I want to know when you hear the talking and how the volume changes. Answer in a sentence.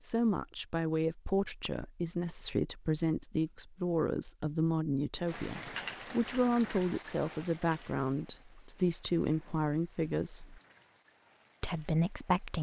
You can hear the talking from 0.1 to 10.6 s, at a steady volume; and briefly from 11.6 to 12.5 s.